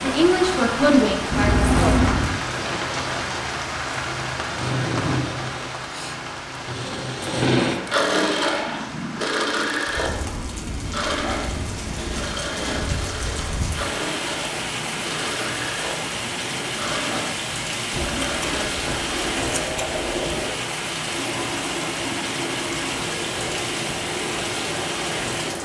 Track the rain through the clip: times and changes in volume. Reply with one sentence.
You can hear the rain from 0.0 to 25.6 s, getting quieter then louder.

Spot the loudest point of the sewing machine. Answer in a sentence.
The volume of the sewing machine peaks at 8 seconds.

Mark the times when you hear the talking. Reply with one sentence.
The talking can be heard from 0.0 to 1.7 s.